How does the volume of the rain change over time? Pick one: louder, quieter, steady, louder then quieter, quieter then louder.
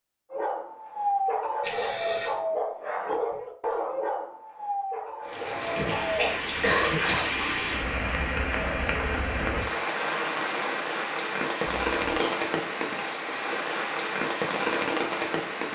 steady.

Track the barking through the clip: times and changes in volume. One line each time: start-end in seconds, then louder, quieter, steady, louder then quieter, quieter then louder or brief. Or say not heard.
0.3-6.4 quieter.